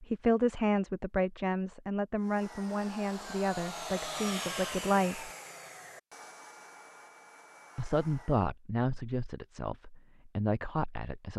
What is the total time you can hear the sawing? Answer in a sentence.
You can hear the sawing for 6 seconds altogether.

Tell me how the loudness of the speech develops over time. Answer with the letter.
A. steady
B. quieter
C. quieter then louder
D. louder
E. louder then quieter
B.